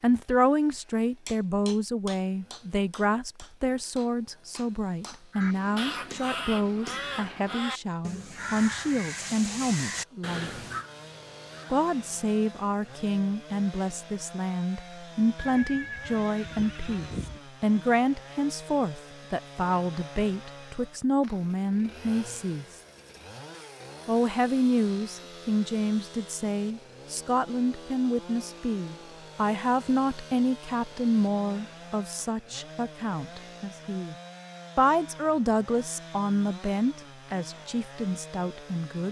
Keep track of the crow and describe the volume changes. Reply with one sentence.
The loudness of the crow goes down.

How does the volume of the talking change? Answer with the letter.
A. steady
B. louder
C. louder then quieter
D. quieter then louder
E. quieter
A.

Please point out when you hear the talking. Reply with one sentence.
The talking can be heard from 0.0 to 10.6 s, from 11.7 to 22.6 s, from 24.1 to 34.1 s and from 34.8 to 39.0 s.